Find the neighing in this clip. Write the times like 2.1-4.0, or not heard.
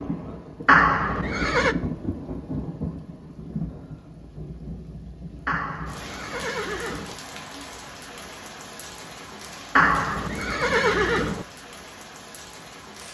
0.7-1.8, 5.5-7.2, 9.8-11.4.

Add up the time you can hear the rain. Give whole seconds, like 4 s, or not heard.
13 s.